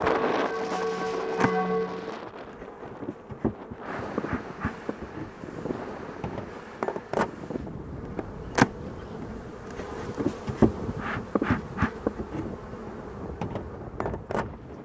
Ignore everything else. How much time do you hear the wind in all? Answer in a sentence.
The wind can be heard for 15 seconds in total.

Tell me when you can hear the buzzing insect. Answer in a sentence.
The buzzing insect can be heard from 0.0 to 14.7 s.